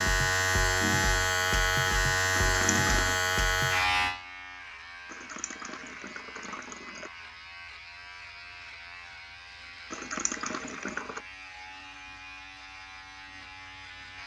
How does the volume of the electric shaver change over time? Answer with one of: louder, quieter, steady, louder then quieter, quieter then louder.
quieter.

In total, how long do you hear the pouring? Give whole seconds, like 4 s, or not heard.
4 s.